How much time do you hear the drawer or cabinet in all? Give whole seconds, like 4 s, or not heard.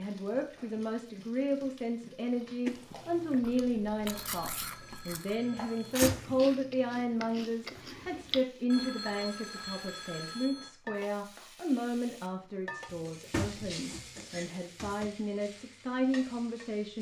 3 s.